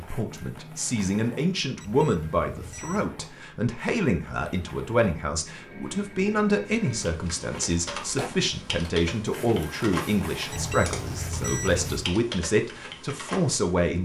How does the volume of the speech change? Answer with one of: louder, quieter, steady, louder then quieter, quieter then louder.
steady.